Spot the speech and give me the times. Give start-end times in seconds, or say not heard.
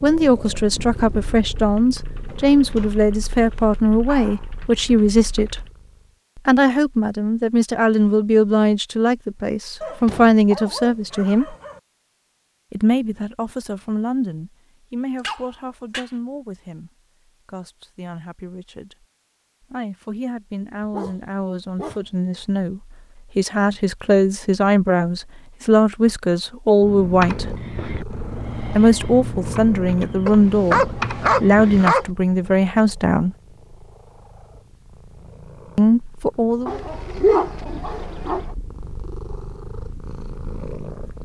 0.0-5.7, 6.3-11.6, 12.7-27.4, 28.8-33.4, 35.8-36.8.